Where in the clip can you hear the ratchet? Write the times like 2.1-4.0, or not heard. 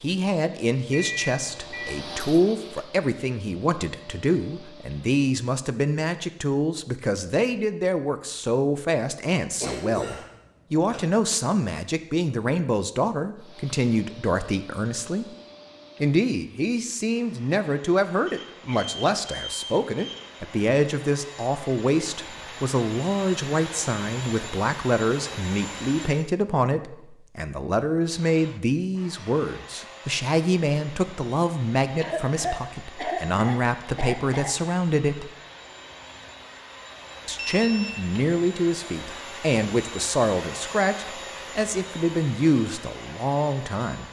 not heard.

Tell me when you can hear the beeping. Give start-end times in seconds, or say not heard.
0.9-1.9, 18.2-20.2, 37.4-38.0.